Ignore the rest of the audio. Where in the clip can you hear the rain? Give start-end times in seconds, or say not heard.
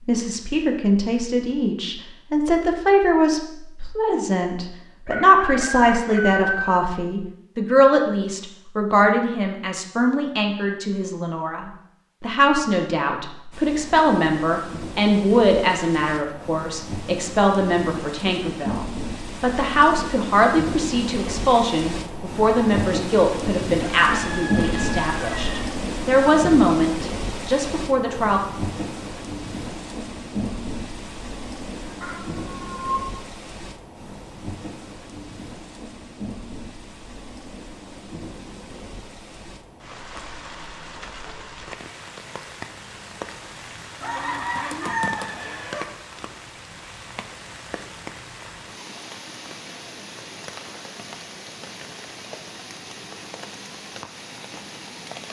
13.5-55.2.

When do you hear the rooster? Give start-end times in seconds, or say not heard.
5.0-6.8, 23.9-25.8, 44.0-45.9.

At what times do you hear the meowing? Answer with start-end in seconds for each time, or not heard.
31.9-33.0.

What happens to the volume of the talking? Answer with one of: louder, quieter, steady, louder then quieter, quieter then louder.
steady.